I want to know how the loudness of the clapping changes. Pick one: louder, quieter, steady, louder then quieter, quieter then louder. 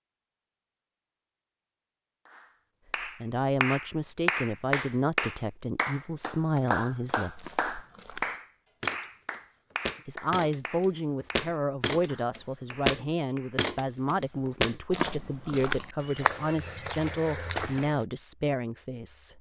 quieter.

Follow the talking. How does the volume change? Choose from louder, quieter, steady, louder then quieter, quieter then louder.
steady.